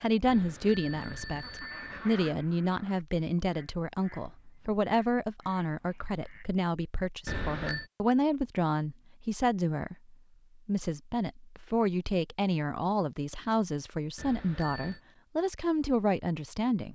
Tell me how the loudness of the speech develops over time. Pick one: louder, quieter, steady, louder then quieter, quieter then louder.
steady.